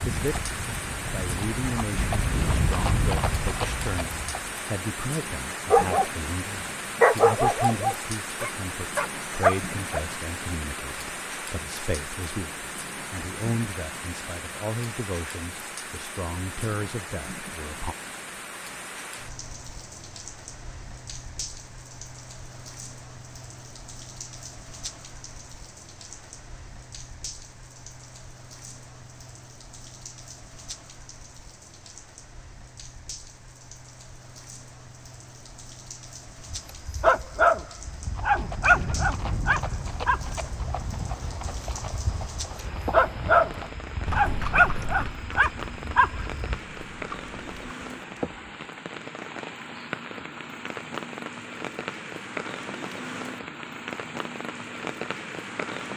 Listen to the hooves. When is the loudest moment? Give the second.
3 s.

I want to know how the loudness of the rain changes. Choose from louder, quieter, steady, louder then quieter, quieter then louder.
quieter then louder.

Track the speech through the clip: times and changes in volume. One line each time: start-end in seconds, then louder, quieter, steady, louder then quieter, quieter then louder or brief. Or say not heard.
0.1-17.9 steady.